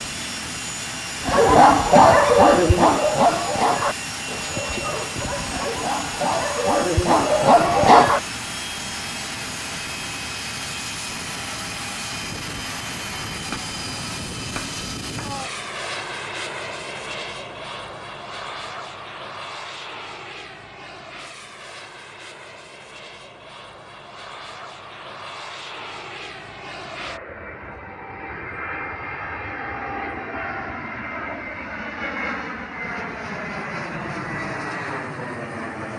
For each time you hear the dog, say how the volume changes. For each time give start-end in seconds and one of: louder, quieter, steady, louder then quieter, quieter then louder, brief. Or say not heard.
1.2-8.2 quieter then louder.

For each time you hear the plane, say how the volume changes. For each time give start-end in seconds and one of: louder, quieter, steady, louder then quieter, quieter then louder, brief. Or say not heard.
0.0-35.9 quieter then louder.